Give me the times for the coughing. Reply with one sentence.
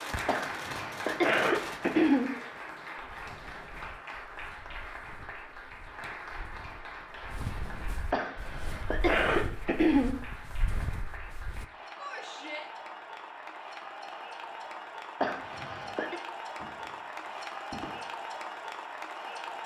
The coughing can be heard from 0.2 to 2.3 s, from 8.1 to 10.1 s and from 15.2 to 16.2 s.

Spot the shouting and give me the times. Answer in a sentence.
The shouting can be heard from 11.9 to 12.7 s.